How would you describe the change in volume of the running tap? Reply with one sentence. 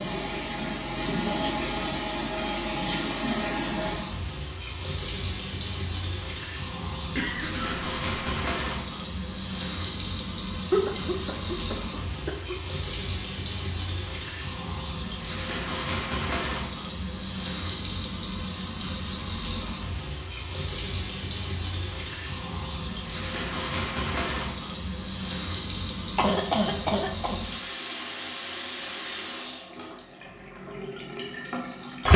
The loudness of the running tap stays about the same.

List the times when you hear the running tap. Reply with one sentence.
The running tap can be heard from 0.0 to 32.1 s.